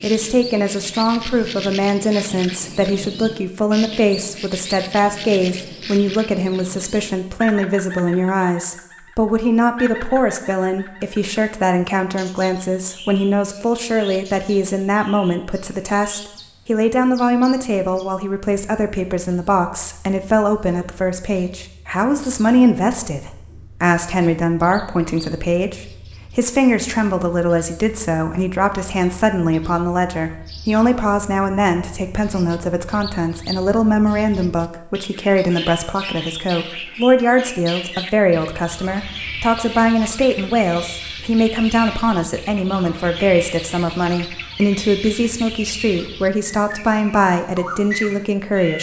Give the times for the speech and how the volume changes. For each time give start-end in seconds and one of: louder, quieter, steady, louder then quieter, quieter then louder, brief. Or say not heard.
0.0-48.7 steady.